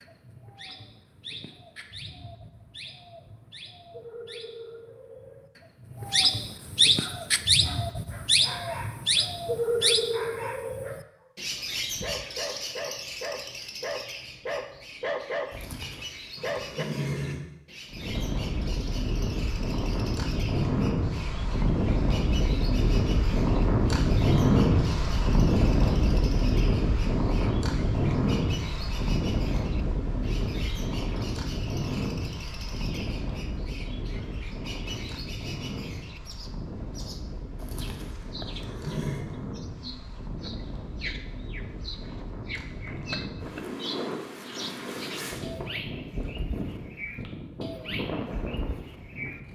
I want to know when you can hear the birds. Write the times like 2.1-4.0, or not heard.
0.0-49.4.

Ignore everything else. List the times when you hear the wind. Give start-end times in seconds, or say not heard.
17.9-49.4.